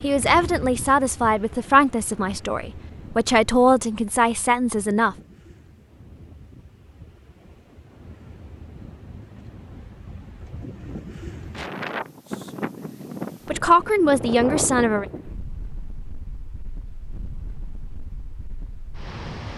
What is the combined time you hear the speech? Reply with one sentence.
You can hear the speech for 7 seconds altogether.